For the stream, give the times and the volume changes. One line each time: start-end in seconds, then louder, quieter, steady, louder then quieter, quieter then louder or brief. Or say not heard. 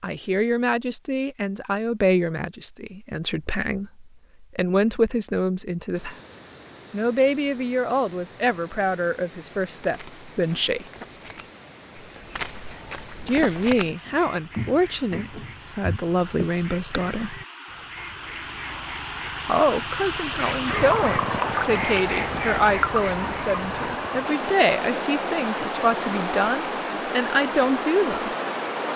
5.9-28.9 louder.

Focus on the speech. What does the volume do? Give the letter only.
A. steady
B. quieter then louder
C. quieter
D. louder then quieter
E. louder
A.